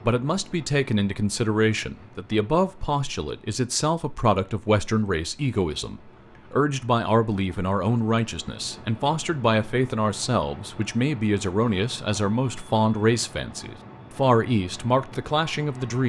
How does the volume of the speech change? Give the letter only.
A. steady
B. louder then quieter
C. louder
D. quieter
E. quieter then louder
A.